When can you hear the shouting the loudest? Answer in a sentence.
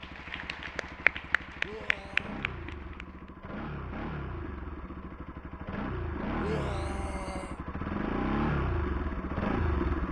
The volume of the shouting peaks at 7 seconds.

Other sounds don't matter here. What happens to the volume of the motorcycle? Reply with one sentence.
The volume of the motorcycle goes up.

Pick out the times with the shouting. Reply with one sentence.
The shouting can be heard from 1.6 to 2.4 s and from 6.4 to 7.6 s.